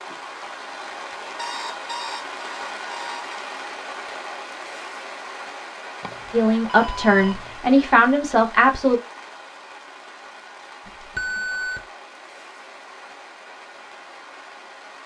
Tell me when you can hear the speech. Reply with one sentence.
You can hear the speech from 6.3 to 9.0 s.